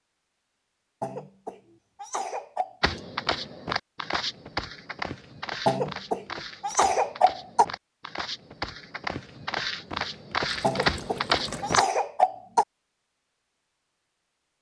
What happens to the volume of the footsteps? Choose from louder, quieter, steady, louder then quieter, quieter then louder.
quieter then louder.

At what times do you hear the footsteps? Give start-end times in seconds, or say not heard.
2.8-11.8.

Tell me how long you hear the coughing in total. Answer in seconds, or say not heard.
6 s.